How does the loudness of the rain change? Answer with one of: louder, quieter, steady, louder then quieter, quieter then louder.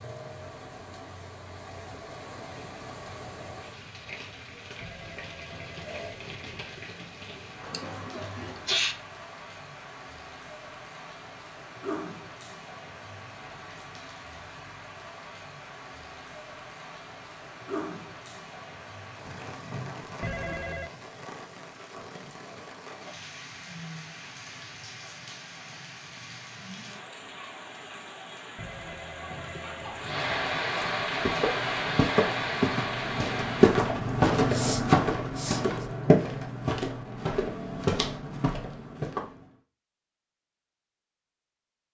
louder.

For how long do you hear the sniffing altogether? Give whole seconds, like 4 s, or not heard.
3 s.